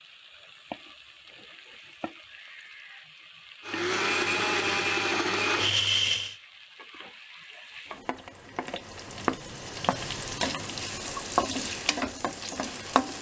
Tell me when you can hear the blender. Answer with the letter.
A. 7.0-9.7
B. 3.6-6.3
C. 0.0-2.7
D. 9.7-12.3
B.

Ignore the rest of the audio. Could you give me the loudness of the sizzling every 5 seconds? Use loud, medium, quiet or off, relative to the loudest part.
quiet, medium, loud.